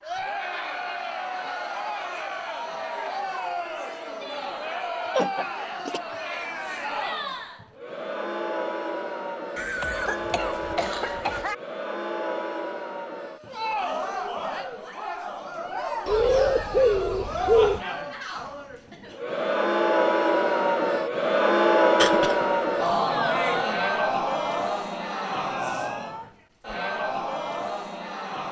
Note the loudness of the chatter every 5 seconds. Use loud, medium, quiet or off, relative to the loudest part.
medium, medium, medium, medium, loud, medium.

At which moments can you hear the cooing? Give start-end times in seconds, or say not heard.
16.1-17.8.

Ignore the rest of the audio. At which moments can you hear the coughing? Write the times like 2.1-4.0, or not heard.
5.1-6.0, 9.6-11.6, 21.9-22.4.